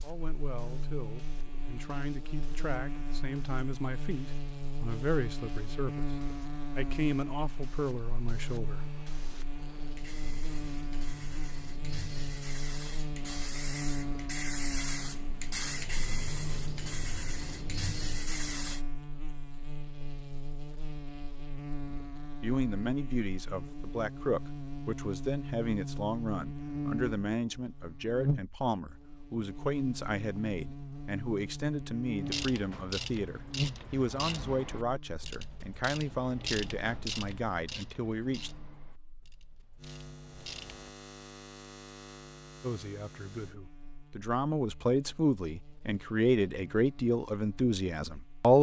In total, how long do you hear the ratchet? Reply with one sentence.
The ratchet can be heard for 9 seconds in total.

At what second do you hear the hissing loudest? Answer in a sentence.
The loudest moment of the hissing is at 16 seconds.